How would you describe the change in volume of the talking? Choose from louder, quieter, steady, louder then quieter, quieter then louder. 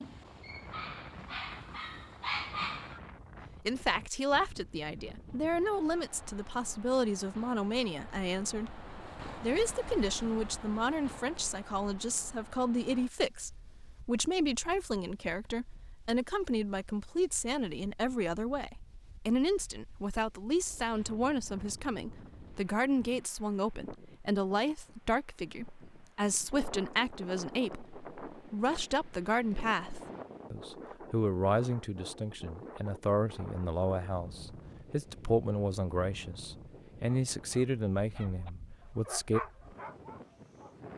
steady.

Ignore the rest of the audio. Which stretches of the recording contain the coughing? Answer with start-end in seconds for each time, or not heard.
not heard.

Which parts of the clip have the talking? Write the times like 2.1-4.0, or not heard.
3.6-39.4.